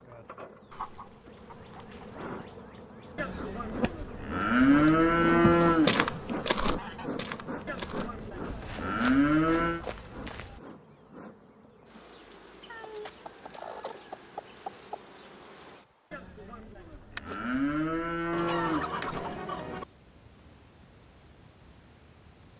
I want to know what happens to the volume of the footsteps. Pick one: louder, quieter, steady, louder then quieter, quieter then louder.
quieter.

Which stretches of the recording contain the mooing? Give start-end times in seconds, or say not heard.
3.1-5.9, 7.7-9.8, 16.1-18.9.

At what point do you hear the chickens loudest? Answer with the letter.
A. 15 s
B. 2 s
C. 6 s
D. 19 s
D.